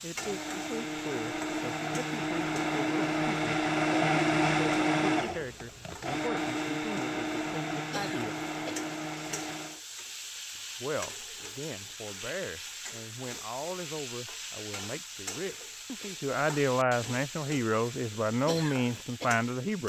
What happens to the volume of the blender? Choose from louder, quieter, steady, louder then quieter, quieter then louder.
louder then quieter.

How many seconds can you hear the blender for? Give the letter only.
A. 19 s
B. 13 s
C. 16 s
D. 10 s
D.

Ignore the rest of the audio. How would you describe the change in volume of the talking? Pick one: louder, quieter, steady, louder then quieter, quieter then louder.
louder.